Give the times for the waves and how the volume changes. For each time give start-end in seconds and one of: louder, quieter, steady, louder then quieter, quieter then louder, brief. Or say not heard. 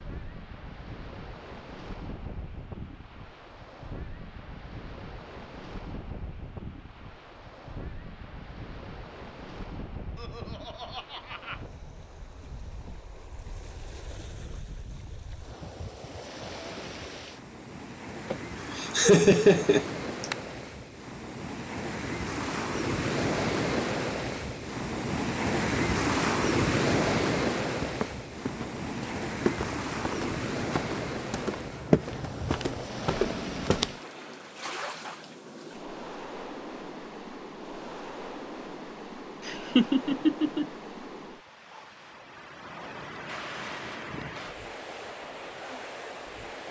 0.0-46.6 louder then quieter.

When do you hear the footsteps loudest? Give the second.
32 s.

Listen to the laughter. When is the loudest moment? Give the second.
19 s.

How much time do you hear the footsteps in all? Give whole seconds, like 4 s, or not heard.
6 s.